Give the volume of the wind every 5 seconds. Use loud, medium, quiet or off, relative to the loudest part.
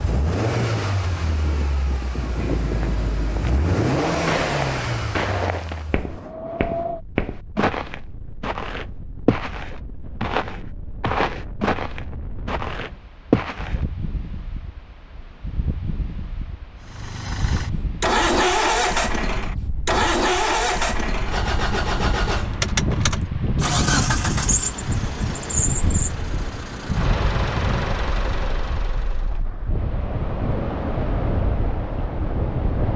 medium, medium, quiet, medium, loud, loud, loud.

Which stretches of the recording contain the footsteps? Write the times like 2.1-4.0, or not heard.
2.4-13.8.